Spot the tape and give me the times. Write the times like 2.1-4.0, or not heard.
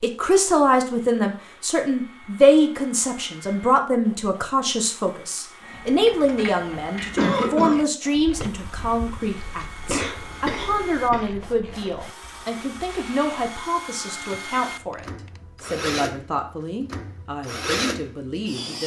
not heard.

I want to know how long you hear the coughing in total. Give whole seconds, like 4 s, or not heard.
2 s.